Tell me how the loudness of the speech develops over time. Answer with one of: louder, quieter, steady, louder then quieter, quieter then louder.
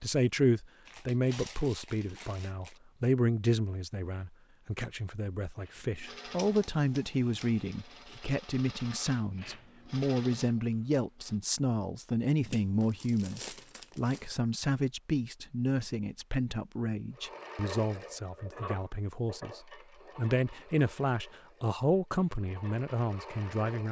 steady.